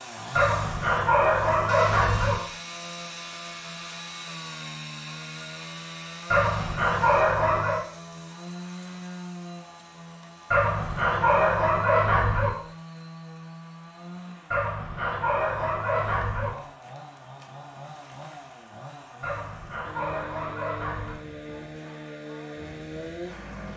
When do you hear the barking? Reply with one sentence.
The barking can be heard from 0.3 to 2.4 s, from 6.3 to 7.8 s, from 10.5 to 12.5 s, from 14.5 to 16.5 s and from 19.2 to 21.1 s.